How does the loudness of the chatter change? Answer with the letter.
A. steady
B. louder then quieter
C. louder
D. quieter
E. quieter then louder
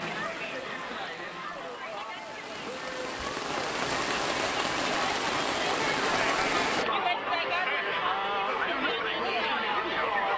C.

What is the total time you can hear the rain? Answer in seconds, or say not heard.
7 s.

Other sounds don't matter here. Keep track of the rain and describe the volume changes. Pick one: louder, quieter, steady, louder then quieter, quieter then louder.
louder.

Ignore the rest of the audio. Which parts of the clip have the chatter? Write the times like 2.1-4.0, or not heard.
0.0-10.3.